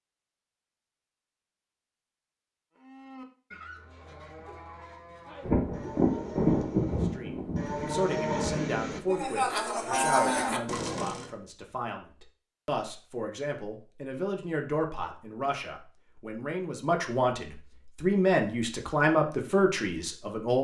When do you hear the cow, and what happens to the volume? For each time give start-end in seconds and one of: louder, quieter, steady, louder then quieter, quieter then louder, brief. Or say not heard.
2.8-11.3 louder.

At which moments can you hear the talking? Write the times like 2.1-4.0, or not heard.
7.0-20.5.